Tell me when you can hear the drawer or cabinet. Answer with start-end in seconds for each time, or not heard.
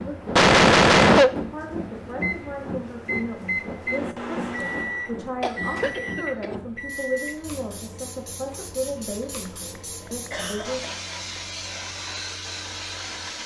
not heard.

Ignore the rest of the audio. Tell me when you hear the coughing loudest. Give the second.
1 s.